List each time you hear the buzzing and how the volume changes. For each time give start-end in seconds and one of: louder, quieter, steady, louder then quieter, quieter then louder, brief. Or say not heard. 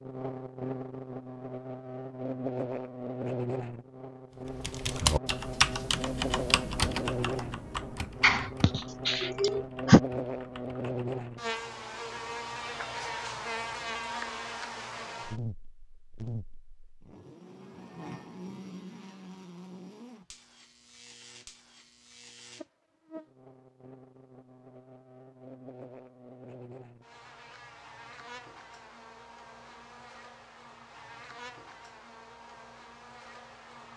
0.0-33.9 quieter.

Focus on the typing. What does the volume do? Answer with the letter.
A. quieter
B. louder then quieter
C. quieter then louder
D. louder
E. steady
A.